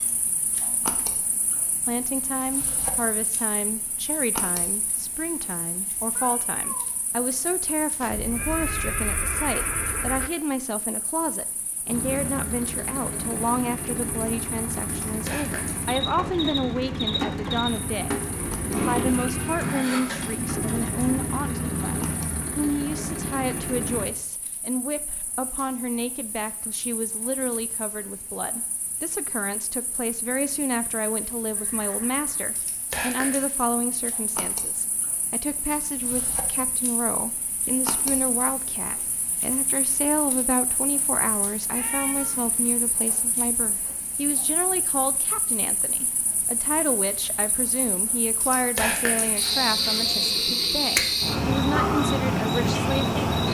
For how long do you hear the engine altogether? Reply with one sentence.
The engine can be heard for 17 seconds in total.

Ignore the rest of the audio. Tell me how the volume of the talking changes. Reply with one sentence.
The volume of the talking stays about the same.